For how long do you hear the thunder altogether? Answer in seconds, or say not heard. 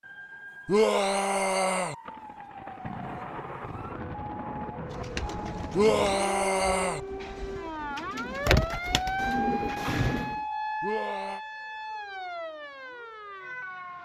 4 s.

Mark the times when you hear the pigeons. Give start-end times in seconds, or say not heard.
4.8-10.3.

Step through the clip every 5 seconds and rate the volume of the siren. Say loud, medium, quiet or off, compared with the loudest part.
medium, loud, loud.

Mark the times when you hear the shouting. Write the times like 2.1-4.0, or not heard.
0.7-1.9, 5.7-7.0, 10.8-11.4.